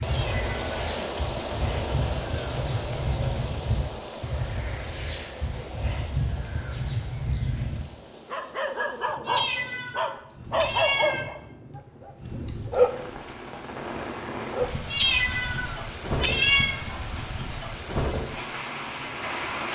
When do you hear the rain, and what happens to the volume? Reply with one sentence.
The rain can be heard from 0.0 to 19.7 s, getting quieter then louder.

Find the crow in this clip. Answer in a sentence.
The crow can be heard from 0.0 to 7.8 s.